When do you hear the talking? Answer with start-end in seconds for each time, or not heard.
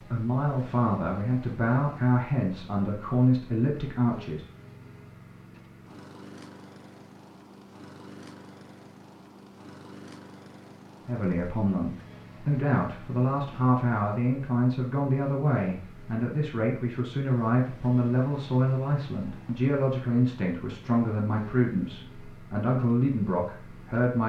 0.0-4.5, 11.1-24.2.